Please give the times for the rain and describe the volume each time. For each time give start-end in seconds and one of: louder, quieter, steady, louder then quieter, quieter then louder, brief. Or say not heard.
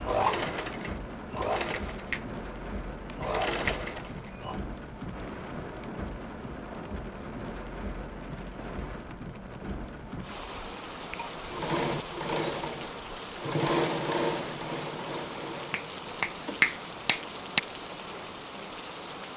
0.0-19.3 steady.